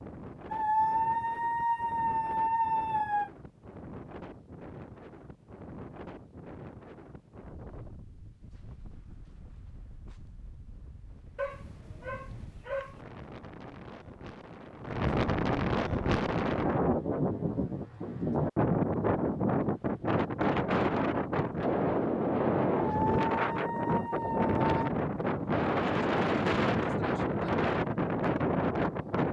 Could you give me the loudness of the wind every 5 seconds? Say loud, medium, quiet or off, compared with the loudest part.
quiet, quiet, quiet, loud, loud, loud.